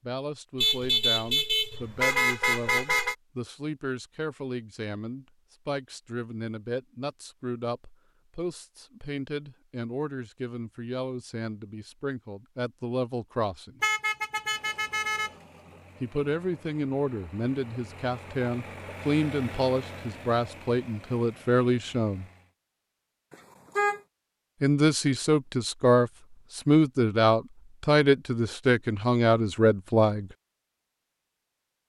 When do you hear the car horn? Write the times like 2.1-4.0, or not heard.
0.6-3.1, 13.8-15.3, 23.3-24.0.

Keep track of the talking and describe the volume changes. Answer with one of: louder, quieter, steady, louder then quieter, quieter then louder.
louder.